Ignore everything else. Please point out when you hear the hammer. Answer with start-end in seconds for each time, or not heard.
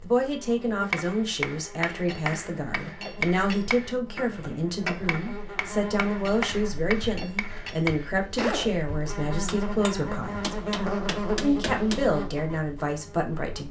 0.8-8.8, 9.4-12.1.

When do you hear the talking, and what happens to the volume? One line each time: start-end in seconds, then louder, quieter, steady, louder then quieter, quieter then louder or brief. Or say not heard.
0.0-10.6 steady
11.4-13.6 brief.